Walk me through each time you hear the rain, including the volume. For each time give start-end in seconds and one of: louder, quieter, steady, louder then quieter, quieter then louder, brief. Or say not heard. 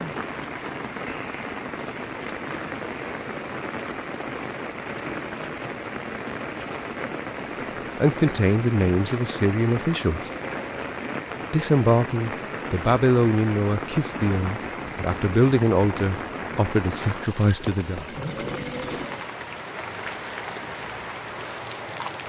0.0-22.2 steady.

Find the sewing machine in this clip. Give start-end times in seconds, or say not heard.
17.1-19.2.